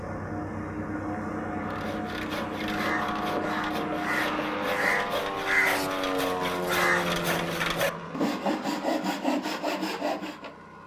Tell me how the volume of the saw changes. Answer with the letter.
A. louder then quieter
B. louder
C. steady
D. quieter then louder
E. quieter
B.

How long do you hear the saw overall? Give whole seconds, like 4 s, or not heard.
9 s.